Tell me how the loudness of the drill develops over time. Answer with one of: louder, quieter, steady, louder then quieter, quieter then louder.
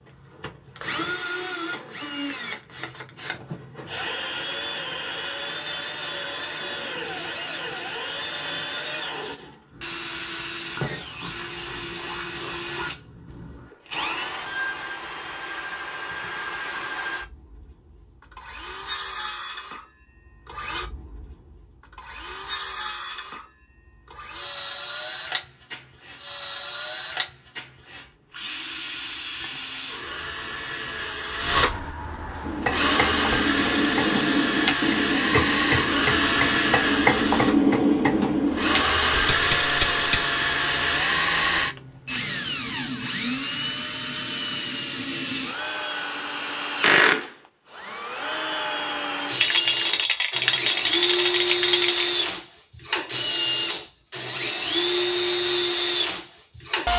louder.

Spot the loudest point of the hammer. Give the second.
38 s.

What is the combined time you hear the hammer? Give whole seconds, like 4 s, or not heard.
8 s.